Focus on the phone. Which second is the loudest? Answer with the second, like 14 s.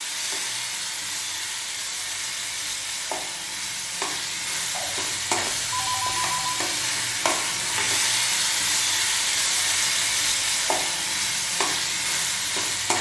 6 s.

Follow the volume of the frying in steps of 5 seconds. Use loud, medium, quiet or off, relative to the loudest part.
medium, loud, loud.